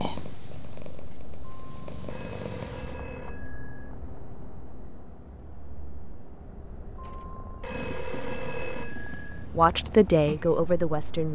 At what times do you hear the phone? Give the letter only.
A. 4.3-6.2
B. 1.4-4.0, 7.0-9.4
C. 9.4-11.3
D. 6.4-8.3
B.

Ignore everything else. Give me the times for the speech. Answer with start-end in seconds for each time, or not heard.
9.4-11.3.